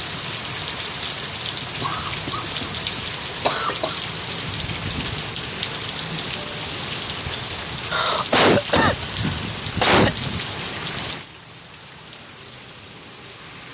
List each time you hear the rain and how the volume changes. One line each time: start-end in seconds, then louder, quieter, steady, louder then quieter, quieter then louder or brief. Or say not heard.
0.0-13.6 quieter.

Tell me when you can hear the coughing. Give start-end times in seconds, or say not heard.
1.6-4.0, 7.8-10.1.